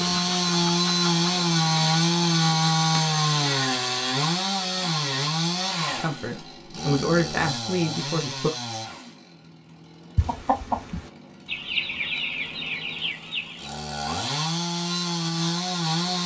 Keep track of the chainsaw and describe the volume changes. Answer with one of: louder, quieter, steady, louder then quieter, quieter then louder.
quieter then louder.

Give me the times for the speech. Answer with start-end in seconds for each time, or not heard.
5.9-8.5.